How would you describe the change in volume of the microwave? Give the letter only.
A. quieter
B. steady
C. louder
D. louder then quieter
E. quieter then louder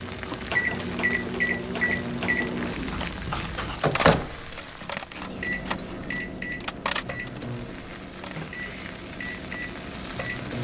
A.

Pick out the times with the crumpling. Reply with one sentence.
The crumpling can be heard from 2.4 to 3.1 s and from 8.3 to 8.9 s.